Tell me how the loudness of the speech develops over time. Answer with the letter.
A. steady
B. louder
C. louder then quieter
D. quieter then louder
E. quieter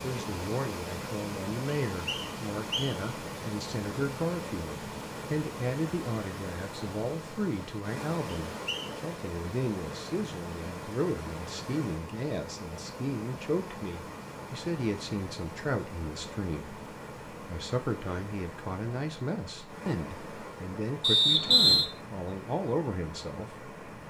A.